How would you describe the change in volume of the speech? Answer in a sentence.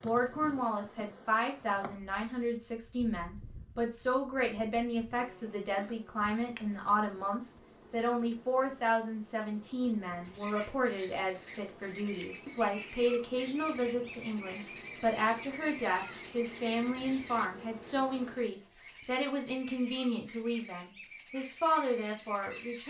The loudness of the speech stays about the same.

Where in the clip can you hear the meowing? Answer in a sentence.
The meowing can't be heard in this clip.